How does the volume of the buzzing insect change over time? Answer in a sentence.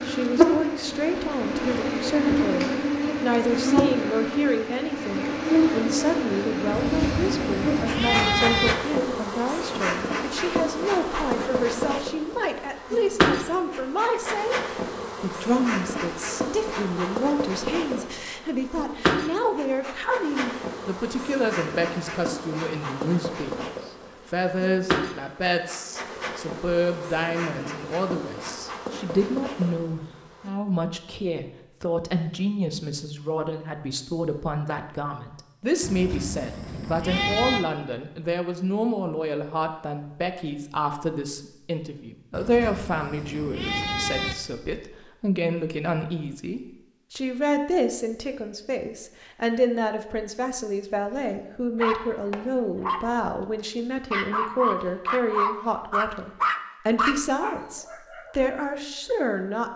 The loudness of the buzzing insect goes down.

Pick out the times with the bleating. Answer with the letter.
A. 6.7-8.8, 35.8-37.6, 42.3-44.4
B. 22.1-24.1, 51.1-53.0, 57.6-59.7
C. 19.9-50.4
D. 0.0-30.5
A.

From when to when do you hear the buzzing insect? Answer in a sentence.
The buzzing insect can be heard from 0.0 to 30.5 s.